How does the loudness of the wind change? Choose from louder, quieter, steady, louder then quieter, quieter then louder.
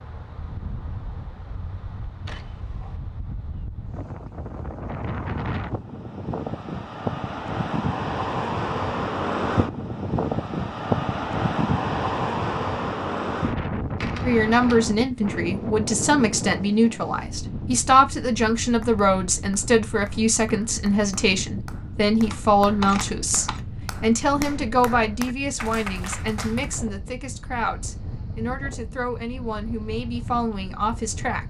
louder then quieter.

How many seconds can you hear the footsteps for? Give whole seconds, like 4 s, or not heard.
not heard.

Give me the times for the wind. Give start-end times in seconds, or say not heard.
0.0-31.4.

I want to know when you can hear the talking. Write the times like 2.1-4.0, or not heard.
14.2-31.4.